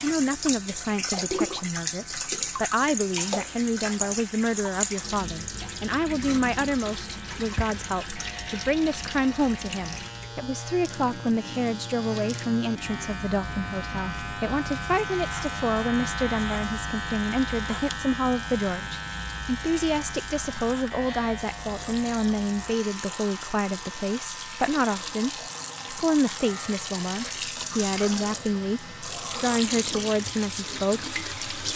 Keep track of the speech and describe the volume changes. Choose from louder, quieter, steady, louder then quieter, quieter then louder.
steady.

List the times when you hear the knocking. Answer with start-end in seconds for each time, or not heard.
7.3-7.8.